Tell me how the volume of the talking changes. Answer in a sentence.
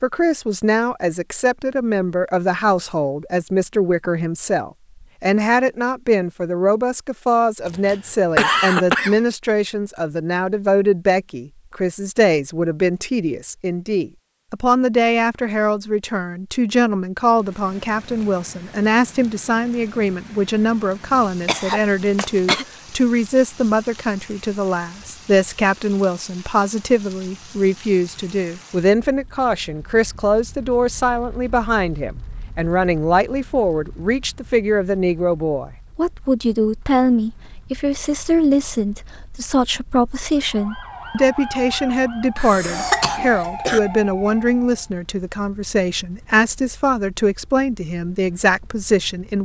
The volume of the talking stays about the same.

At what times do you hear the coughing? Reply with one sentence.
The coughing can be heard from 7.7 to 9.2 s, from 21.1 to 22.6 s and from 42.4 to 43.8 s.